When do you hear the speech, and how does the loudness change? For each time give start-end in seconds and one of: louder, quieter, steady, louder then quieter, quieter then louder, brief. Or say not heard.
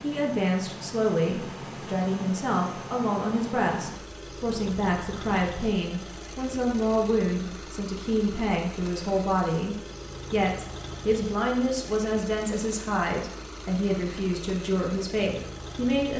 0.0-16.1 steady.